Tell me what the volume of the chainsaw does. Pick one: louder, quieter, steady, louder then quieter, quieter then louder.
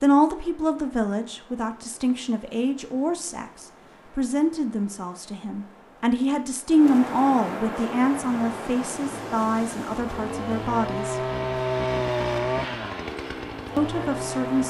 louder then quieter.